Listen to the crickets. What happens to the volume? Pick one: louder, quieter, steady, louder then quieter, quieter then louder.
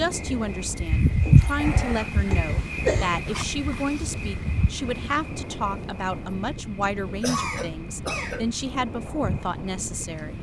quieter then louder.